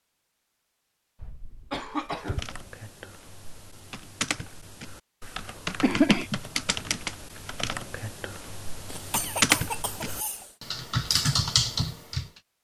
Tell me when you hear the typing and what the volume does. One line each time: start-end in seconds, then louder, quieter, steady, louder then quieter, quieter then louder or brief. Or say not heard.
2.1-12.2 louder.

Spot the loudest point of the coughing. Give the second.
6 s.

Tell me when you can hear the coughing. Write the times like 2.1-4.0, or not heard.
1.2-2.6, 5.8-6.4, 8.9-10.5.